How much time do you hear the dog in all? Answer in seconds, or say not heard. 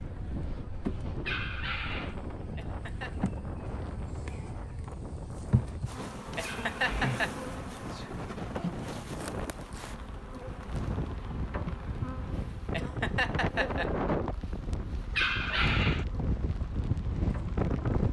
3 s.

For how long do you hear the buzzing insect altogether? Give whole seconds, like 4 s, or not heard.
18 s.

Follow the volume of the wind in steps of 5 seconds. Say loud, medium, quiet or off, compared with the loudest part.
medium, medium, loud, loud.